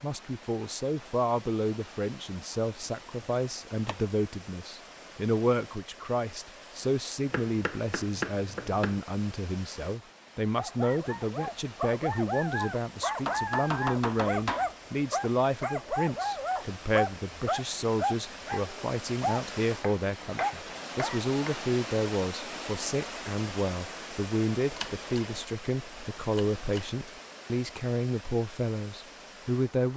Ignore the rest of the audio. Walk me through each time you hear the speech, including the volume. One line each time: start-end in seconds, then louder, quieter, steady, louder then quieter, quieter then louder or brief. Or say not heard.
0.0-29.9 steady.